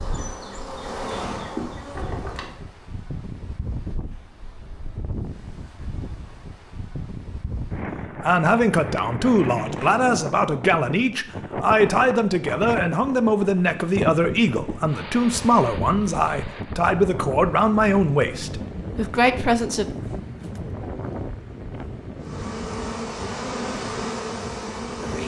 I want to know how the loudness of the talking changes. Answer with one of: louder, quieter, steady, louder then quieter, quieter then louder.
steady.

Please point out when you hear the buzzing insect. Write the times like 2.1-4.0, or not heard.
0.0-2.6, 22.1-25.2.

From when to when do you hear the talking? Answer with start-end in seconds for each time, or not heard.
8.2-19.9.